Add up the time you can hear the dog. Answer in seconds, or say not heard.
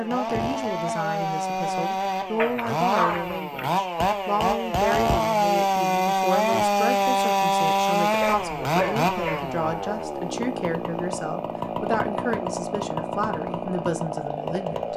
3 s.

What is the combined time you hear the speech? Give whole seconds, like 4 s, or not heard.
15 s.